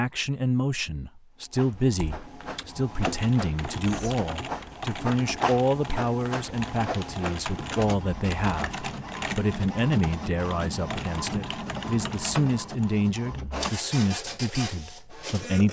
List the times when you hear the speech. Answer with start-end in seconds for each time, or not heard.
0.0-15.6.